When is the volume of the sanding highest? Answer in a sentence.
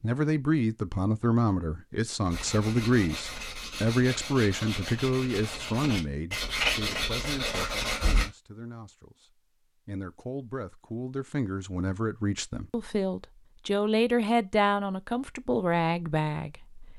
The loudest moment of the sanding is at 7 seconds.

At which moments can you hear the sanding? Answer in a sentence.
The sanding can be heard from 2.2 to 8.3 s.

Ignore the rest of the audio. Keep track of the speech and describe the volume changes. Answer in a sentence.
The volume of the speech goes down, then up.